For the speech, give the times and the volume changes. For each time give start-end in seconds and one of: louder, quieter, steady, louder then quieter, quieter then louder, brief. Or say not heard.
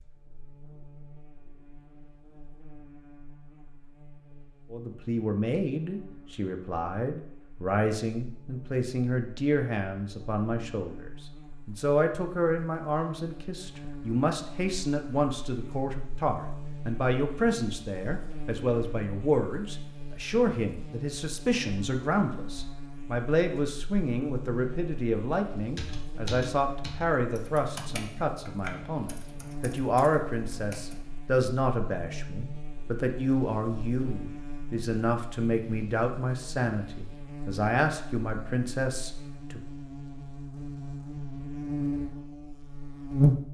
4.7-39.6 steady.